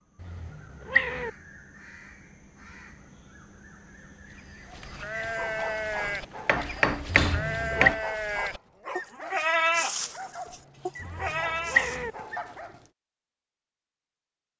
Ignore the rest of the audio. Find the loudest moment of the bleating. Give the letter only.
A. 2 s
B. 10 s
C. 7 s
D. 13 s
B.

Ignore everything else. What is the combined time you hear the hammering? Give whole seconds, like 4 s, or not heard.
2 s.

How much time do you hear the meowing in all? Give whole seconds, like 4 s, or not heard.
3 s.